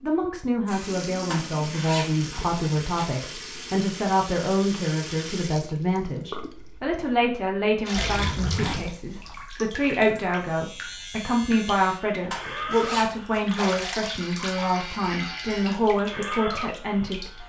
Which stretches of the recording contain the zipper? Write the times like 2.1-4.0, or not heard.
1.3-3.0, 7.9-9.4, 12.3-13.4.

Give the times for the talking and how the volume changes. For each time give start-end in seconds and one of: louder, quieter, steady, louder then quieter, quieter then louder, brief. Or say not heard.
0.0-17.4 steady.